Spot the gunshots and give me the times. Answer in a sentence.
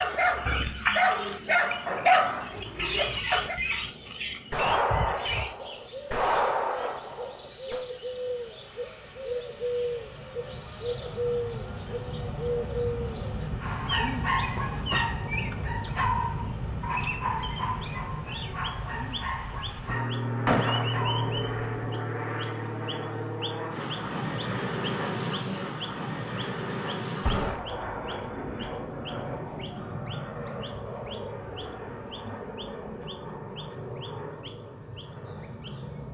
You can hear the gunshots from 4.5 to 7.8 s, from 20.4 to 22.0 s and from 27.2 to 27.7 s.